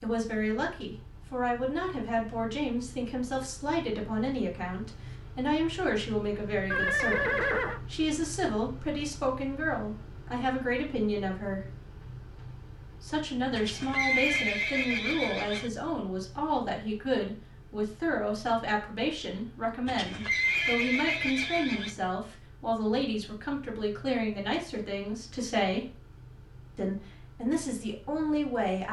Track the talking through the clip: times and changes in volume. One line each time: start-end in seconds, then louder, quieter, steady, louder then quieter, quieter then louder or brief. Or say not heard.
0.0-11.6 steady
13.0-25.9 steady
26.8-28.8 brief.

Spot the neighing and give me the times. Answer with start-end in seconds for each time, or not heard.
6.7-7.8, 13.5-15.7, 19.9-21.9.